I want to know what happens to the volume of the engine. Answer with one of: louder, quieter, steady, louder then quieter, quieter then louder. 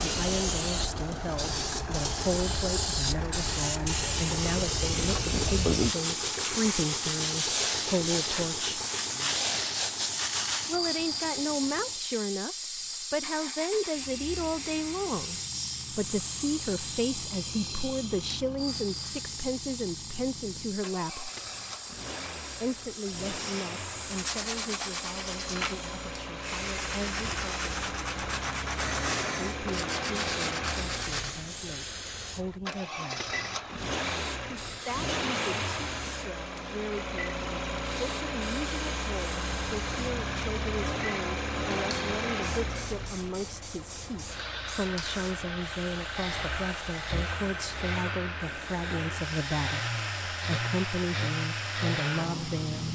quieter then louder.